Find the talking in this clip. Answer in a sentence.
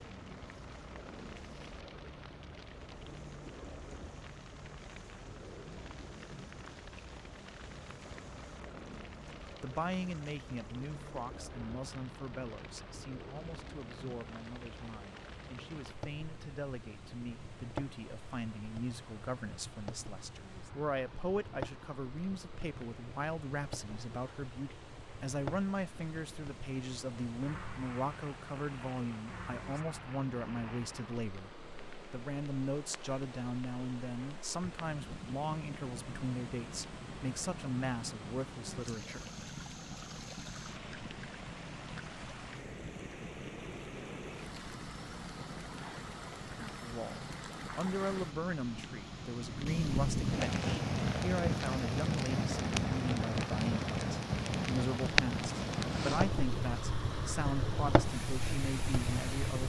You can hear the talking from 9.6 to 39.2 s and from 46.8 to 59.6 s.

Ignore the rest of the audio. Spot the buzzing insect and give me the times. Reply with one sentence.
The buzzing insect can't be heard in this clip.